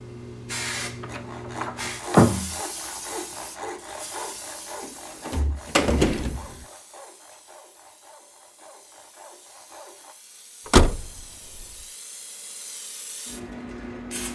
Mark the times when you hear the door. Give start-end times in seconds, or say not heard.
1.0-2.5, 5.2-6.5, 10.7-11.7.